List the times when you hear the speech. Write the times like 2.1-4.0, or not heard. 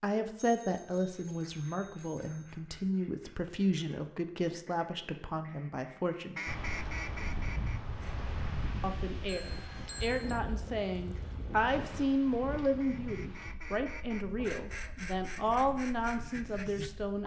0.0-6.4, 8.8-17.2.